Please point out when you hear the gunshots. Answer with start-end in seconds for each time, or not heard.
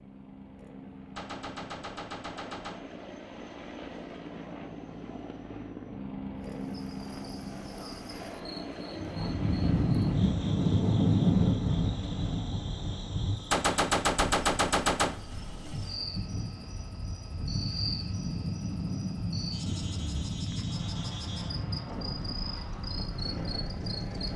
1.1-2.9, 13.5-15.2.